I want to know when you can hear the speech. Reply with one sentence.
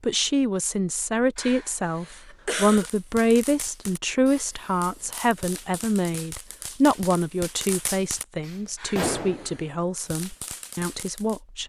You can hear the speech from 0.0 to 11.6 s.